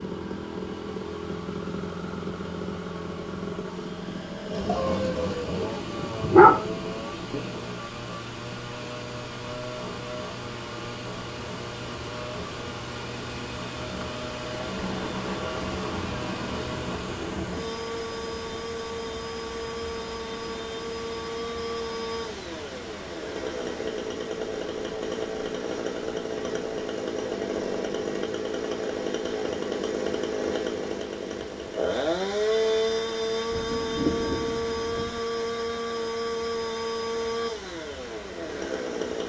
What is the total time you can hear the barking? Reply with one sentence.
You can hear the barking for 2 seconds altogether.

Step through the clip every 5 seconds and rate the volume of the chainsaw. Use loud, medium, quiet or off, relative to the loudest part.
medium, medium, medium, medium, medium, loud, loud, loud.